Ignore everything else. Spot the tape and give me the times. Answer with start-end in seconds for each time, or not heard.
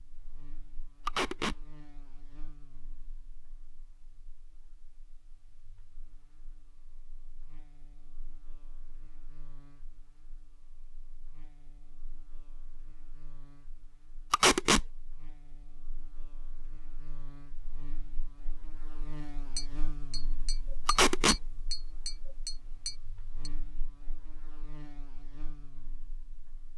1.1-1.6, 14.3-14.8, 20.9-21.4.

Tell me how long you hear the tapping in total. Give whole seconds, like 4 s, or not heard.
4 s.